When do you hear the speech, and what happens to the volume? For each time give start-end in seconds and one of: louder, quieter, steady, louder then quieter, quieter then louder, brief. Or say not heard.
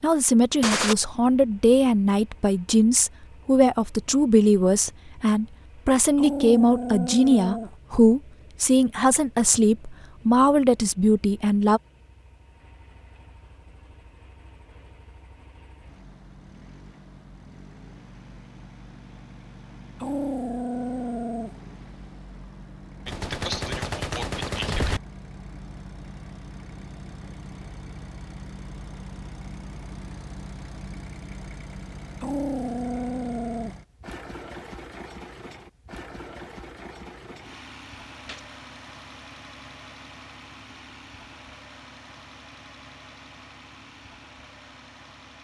0.0-11.8 steady.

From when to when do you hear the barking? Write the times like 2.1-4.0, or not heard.
6.2-7.7, 20.0-21.6, 32.2-33.8.